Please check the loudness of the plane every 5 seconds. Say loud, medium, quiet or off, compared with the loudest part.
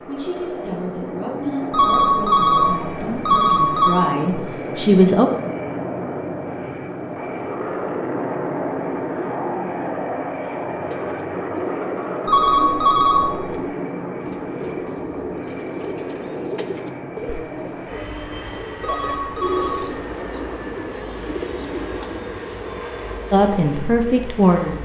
loud, loud, loud, medium, medium.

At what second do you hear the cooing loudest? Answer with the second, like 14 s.
20 s.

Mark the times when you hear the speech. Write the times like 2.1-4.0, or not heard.
0.1-5.3, 23.3-24.8.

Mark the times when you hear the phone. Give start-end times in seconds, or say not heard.
1.7-4.0, 12.2-13.6, 18.8-19.9.